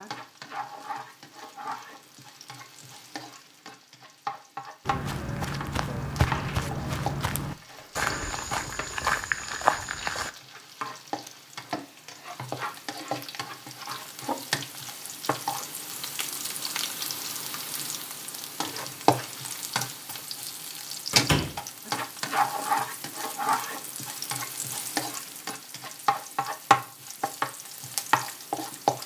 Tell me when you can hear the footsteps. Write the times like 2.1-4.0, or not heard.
4.8-10.3.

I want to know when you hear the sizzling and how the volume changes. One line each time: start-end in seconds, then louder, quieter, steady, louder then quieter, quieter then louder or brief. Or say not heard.
0.0-29.0 louder.